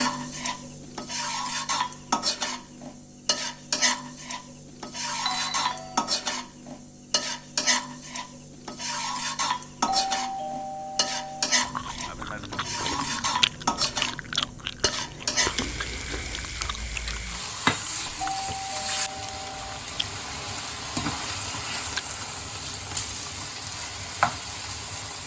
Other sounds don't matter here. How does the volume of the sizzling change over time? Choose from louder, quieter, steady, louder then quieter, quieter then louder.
steady.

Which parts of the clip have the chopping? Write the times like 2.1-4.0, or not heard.
not heard.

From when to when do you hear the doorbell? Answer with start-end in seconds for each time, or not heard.
5.2-6.2, 9.8-11.5, 18.2-19.8.